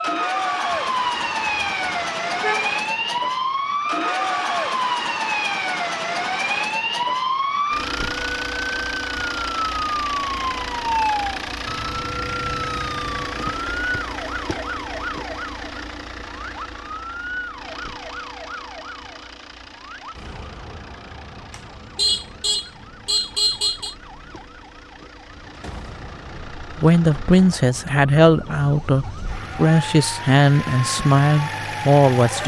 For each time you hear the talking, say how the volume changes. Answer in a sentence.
The talking can be heard from 26.6 to 32.4 s, at a steady volume.